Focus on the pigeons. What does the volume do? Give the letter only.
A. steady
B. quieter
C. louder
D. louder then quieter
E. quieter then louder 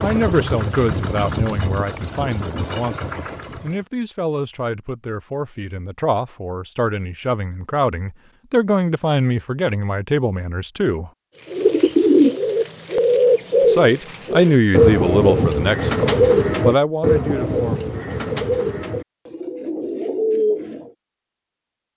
B.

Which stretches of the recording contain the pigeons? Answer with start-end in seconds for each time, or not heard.
11.5-20.9.